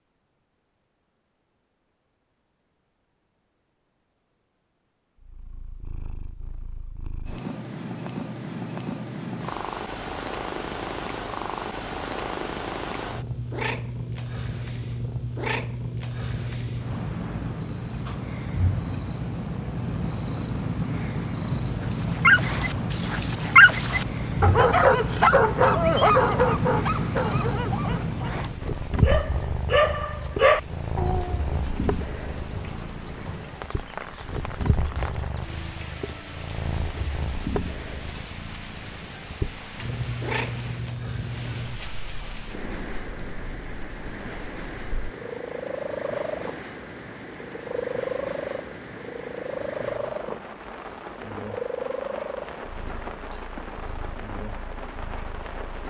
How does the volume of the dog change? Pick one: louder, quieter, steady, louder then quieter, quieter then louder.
quieter then louder.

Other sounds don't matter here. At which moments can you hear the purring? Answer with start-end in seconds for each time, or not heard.
5.2-55.8.